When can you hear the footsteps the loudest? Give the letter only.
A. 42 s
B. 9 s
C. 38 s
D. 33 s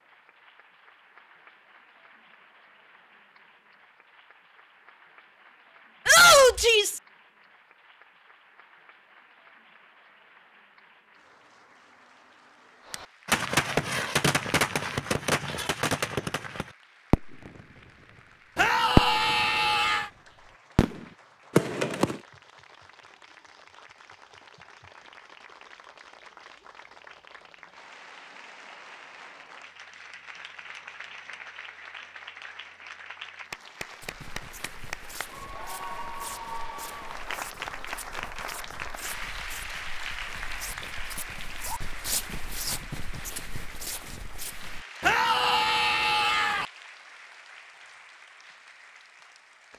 A.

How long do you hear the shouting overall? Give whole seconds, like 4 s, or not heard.
4 s.